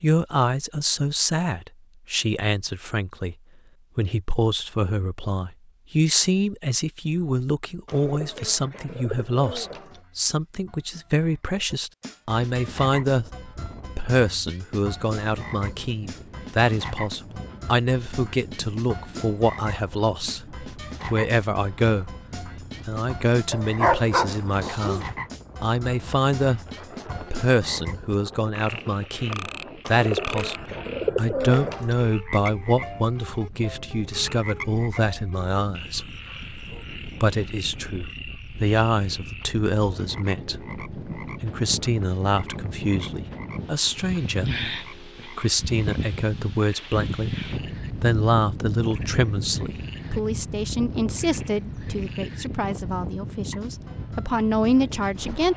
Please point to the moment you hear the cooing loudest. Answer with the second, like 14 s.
31 s.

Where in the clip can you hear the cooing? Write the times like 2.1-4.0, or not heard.
7.8-10.0, 29.9-32.0.